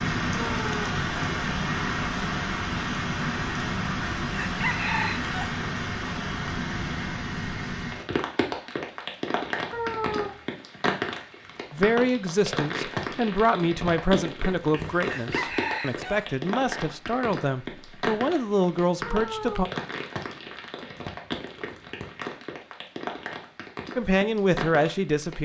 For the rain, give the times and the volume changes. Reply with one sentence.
The rain can be heard from 0.0 to 25.4 s, getting quieter.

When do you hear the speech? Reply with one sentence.
You can hear the speech from 11.7 to 19.6 s and from 23.9 to 25.4 s.